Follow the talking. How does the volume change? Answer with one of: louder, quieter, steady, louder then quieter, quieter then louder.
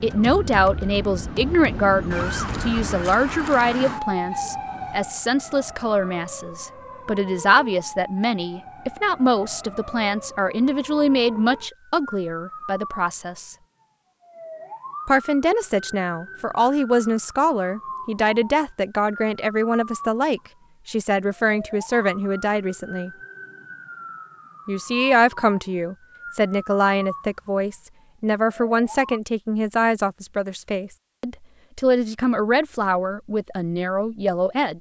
steady.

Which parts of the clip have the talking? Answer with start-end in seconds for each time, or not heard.
0.0-13.6, 15.1-23.1, 24.6-34.7.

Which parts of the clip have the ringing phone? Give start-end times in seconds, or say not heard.
not heard.